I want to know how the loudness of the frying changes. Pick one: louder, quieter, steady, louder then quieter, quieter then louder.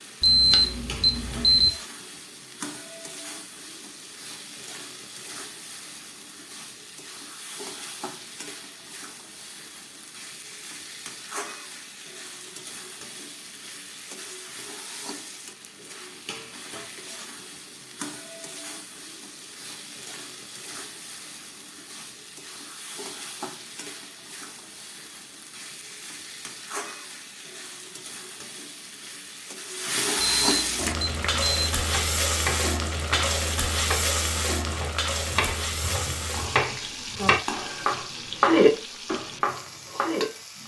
louder.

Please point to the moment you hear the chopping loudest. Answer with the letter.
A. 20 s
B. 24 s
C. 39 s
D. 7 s
C.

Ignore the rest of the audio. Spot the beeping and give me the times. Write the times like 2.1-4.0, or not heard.
0.2-1.7, 30.1-31.7.